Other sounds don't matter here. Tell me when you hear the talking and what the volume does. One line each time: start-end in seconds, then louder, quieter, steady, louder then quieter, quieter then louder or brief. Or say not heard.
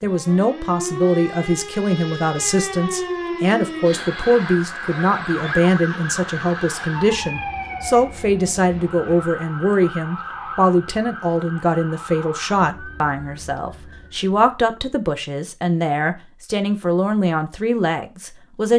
0.0-18.7 steady.